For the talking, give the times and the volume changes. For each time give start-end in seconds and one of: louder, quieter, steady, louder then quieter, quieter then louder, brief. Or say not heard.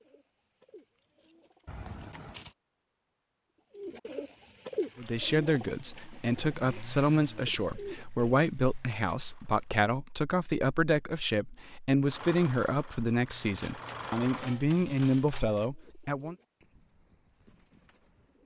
5.0-16.4 steady.